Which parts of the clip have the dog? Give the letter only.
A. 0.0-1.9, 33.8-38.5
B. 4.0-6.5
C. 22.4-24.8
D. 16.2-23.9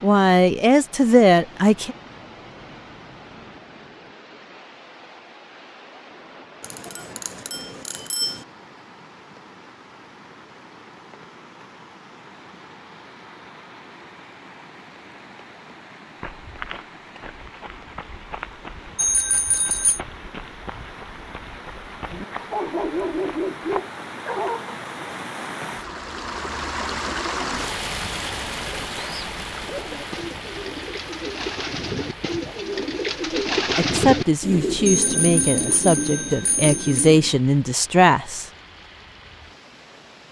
C.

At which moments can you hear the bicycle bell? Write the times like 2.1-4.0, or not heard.
6.6-8.4, 18.9-20.0, 34.9-37.1.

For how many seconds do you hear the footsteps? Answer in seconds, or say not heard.
8 s.